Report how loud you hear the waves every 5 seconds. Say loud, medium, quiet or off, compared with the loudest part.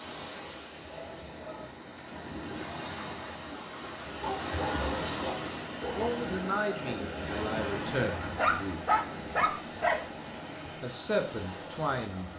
loud, loud, medium.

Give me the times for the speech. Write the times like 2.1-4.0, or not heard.
5.9-8.8, 10.8-12.3.